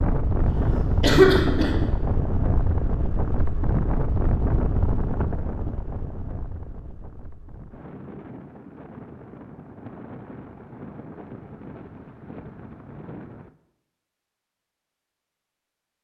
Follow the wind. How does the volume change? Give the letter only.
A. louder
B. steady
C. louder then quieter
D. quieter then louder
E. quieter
E.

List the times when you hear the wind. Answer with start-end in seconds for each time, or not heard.
0.0-13.6.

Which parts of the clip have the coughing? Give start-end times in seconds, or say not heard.
0.5-1.8.